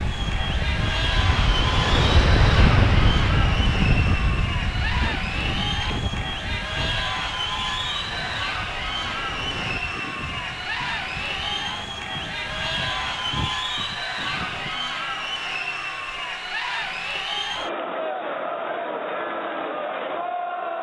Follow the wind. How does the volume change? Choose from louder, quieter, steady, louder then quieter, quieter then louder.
quieter.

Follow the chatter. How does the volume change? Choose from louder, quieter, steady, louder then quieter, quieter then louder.
steady.